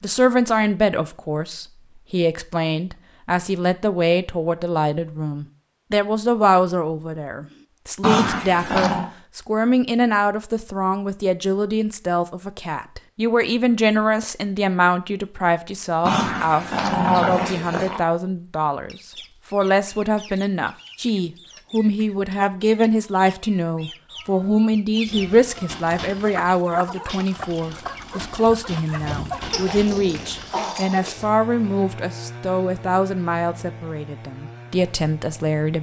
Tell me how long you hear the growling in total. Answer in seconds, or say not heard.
5 s.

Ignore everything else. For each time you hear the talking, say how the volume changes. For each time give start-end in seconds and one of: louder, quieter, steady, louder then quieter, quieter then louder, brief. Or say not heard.
0.0-35.7 steady.